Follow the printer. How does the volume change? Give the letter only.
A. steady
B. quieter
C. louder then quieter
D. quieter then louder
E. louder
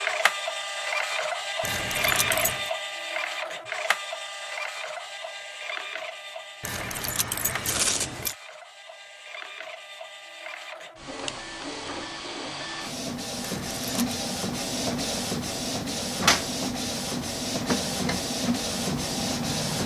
D.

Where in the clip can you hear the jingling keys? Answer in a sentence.
The jingling keys can be heard from 1.6 to 2.7 s, from 6.6 to 8.3 s and from 13.4 to 14.2 s.